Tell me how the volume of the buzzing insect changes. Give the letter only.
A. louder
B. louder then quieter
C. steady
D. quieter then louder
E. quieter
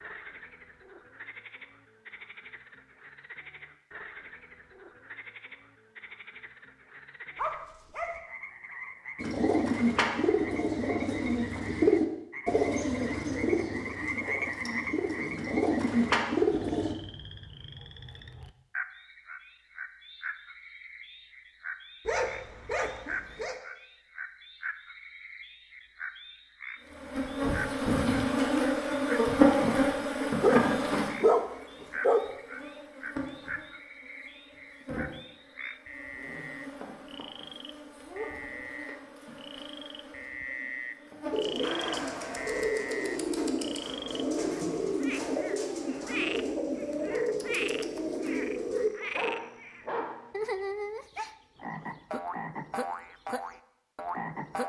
E.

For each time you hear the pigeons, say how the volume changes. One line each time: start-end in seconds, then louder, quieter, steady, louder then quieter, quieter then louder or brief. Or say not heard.
9.2-16.9 quieter then louder
41.3-48.9 steady.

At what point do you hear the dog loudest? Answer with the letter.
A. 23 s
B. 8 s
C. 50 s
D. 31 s
D.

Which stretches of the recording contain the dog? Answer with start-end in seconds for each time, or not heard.
7.3-8.2, 22.1-23.6, 30.4-32.2, 49.0-50.4.